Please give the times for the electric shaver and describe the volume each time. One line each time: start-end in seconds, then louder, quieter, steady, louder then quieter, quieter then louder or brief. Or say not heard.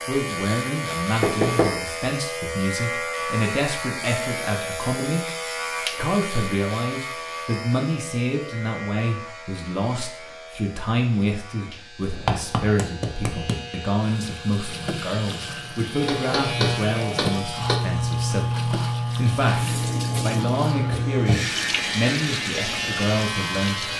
0.0-23.9 quieter then louder.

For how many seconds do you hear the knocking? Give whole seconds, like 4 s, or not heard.
4 s.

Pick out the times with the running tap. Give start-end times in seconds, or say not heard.
14.1-23.9.